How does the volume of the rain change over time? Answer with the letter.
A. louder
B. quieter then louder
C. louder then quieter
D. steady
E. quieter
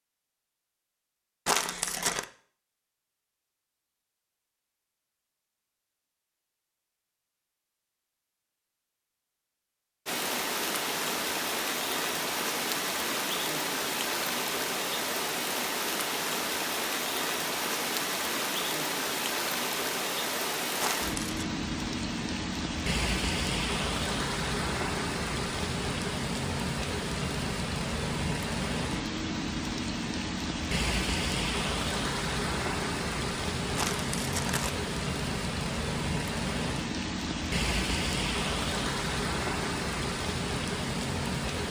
D.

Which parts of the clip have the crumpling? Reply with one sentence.
You can hear the crumpling from 1.4 to 2.2 s, from 20.8 to 21.5 s and from 33.8 to 34.8 s.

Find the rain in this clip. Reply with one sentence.
The rain can be heard from 10.1 to 41.6 s.